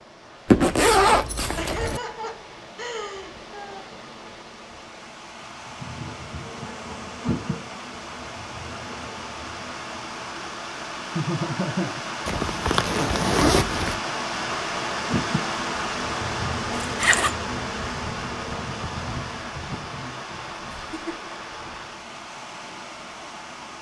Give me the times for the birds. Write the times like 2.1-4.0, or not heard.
not heard.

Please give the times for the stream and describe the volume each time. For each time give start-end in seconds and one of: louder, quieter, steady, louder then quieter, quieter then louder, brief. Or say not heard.
0.0-23.7 louder then quieter.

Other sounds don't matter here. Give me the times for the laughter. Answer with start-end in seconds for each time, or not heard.
1.6-3.9, 11.2-12.0, 20.9-21.3.